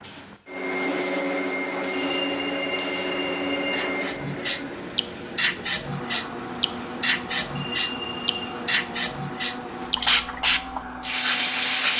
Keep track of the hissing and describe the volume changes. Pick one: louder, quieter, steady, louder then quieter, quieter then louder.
louder.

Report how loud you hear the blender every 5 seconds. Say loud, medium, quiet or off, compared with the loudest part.
loud, medium, medium.